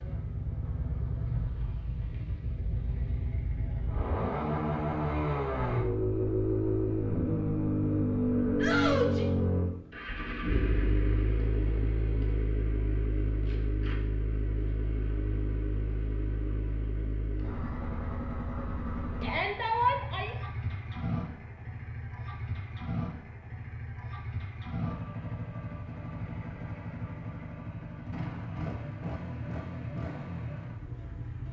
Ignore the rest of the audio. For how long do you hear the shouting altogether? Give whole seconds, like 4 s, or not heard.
2 s.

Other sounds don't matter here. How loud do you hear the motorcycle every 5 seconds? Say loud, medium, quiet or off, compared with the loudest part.
medium, loud, medium, medium, medium, medium, medium.